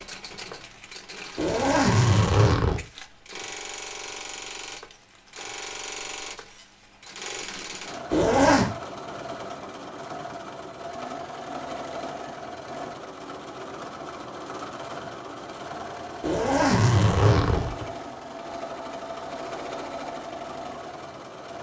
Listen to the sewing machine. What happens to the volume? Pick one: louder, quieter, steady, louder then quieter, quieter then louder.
steady.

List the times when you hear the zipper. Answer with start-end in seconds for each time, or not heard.
1.4-2.8, 8.1-8.7, 16.2-17.9.